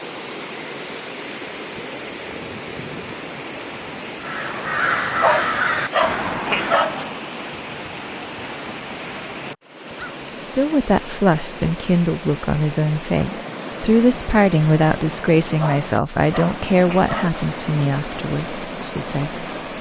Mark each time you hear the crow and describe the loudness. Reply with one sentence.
The crow can be heard from 4.2 to 10.2 s, getting quieter.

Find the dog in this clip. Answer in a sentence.
You can hear the dog from 5.2 to 7.0 s and from 15.6 to 17.4 s.